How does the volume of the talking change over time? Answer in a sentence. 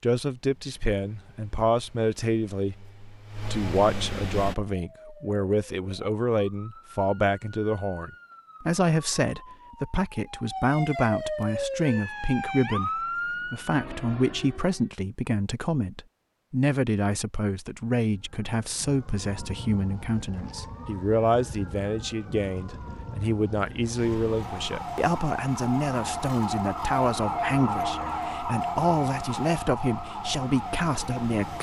The volume of the talking stays about the same.